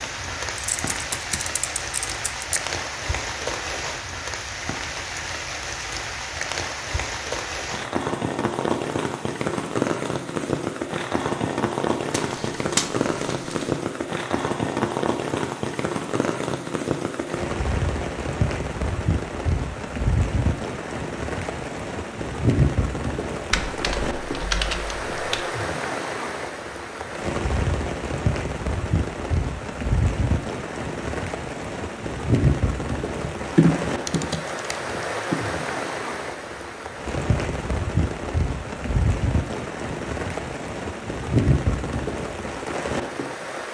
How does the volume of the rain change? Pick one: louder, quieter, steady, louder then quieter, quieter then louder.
steady.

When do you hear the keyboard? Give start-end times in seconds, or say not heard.
0.7-2.6, 12.1-13.7, 23.5-25.4, 33.2-35.4.